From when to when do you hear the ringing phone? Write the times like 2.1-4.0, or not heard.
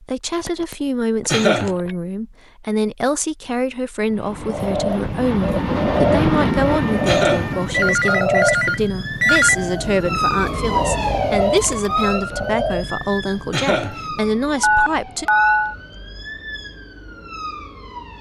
0.5-1.9, 7.7-9.6, 14.6-15.8.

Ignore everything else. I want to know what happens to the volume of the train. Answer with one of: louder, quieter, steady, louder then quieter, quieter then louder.
louder then quieter.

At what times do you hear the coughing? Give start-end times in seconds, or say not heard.
1.2-1.8, 7.0-7.5, 13.5-14.0.